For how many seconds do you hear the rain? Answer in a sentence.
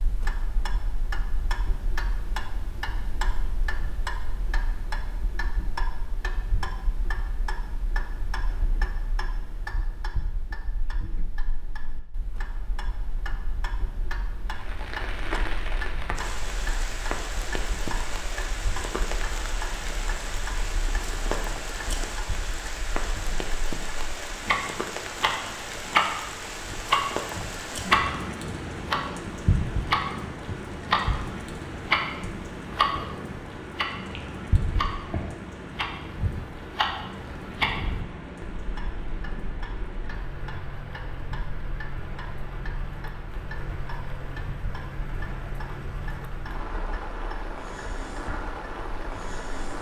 You can hear the rain for 35 seconds altogether.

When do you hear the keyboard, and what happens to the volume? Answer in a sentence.
The keyboard can't be heard in this clip.